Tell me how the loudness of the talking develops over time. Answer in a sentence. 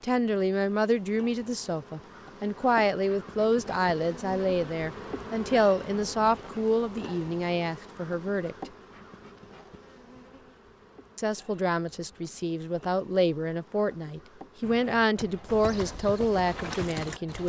The volume of the talking stays about the same.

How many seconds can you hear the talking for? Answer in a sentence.
The talking can be heard for 15 seconds in total.